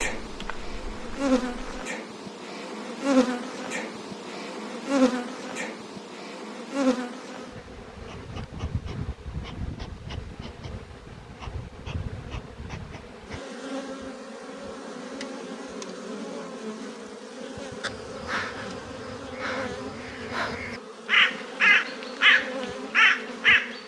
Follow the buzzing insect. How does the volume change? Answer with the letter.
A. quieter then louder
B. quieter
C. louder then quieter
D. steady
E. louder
B.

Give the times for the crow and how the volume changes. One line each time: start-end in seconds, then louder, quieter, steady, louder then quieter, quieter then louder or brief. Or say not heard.
17.8-23.8 louder.